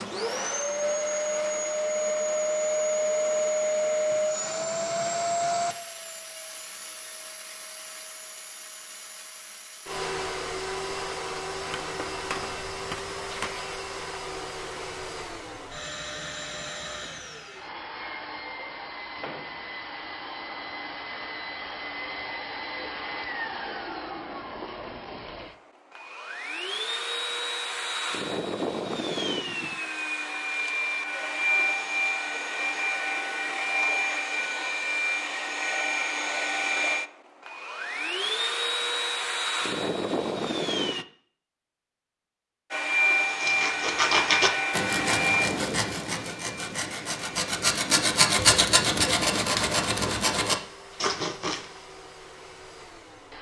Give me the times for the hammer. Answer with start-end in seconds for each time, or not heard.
11.8-13.5.